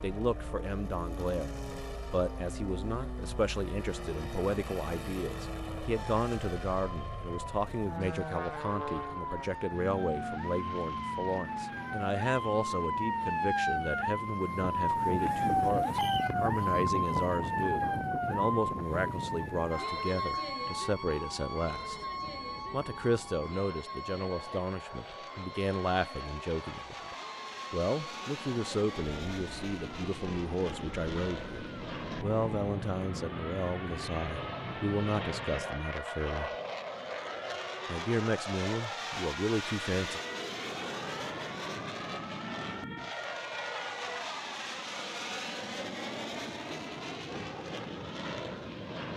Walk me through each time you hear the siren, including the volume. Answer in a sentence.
You can hear the siren from 0.0 to 44.3 s, getting louder then quieter.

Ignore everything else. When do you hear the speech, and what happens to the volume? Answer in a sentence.
The speech can be heard from 0.0 to 21.9 s, at a steady volume; from 22.7 to 36.5 s, at a steady volume; and briefly from 37.9 to 40.2 s.